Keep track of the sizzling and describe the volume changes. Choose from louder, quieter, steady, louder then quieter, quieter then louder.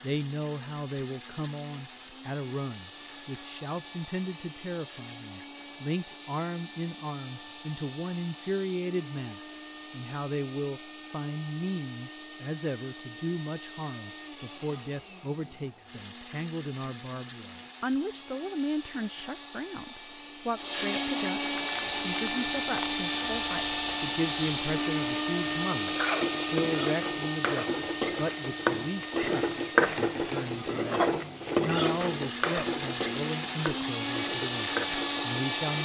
louder then quieter.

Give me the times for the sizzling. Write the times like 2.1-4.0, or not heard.
21.5-35.8.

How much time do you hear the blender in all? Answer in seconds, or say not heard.
36 s.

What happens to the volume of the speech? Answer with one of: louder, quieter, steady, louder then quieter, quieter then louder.
steady.